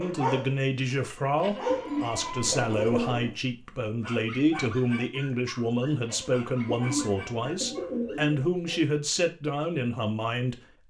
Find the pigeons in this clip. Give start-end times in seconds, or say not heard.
1.6-3.3, 6.8-8.6.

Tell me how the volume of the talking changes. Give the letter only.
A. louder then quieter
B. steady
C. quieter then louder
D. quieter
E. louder
B.